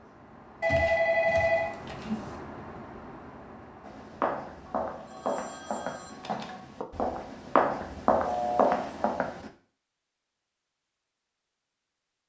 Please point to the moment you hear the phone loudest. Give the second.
1 s.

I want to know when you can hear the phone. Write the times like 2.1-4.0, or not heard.
0.6-2.3, 4.9-6.7, 8.2-8.8.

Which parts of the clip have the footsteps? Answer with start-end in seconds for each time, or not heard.
3.9-9.5.